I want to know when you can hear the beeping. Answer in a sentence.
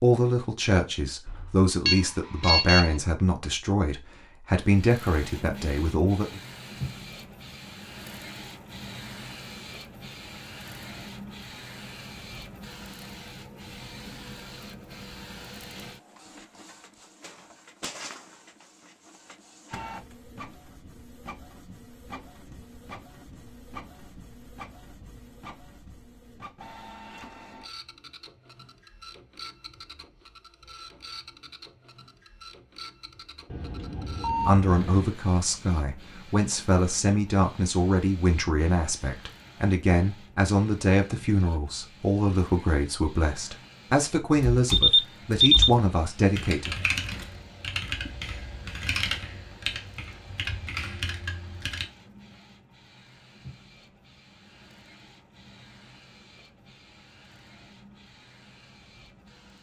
The beeping can be heard from 1.2 to 2.9 s, from 33.5 to 35.1 s and from 44.7 to 45.7 s.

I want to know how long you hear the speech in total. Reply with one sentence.
You can hear the speech for 19 seconds altogether.